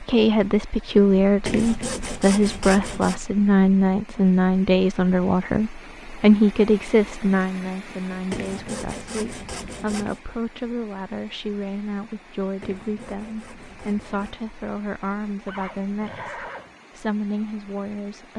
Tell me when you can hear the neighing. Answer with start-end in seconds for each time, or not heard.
15.4-16.8.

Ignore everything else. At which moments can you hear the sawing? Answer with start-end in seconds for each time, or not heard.
1.4-3.2, 8.3-10.2, 12.6-14.4.